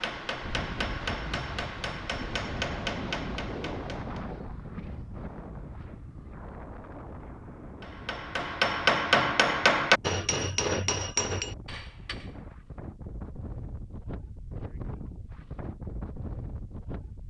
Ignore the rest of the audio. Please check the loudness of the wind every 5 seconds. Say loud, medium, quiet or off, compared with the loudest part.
loud, medium, medium, loud.